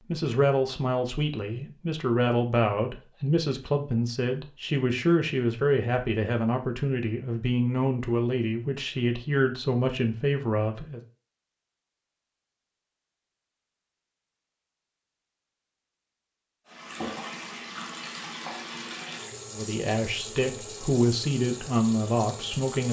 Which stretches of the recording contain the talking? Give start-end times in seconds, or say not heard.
0.1-11.0, 19.5-22.8.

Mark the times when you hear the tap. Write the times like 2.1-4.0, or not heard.
16.6-22.8.